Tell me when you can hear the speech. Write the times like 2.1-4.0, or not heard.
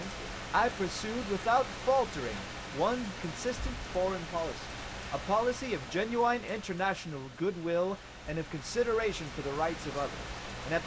0.0-10.8.